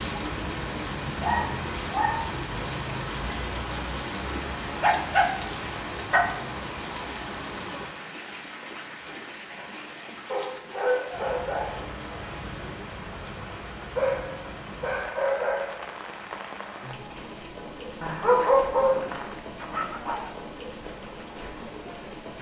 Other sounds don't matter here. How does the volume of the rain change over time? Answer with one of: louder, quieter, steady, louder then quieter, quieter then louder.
quieter.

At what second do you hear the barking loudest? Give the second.
18 s.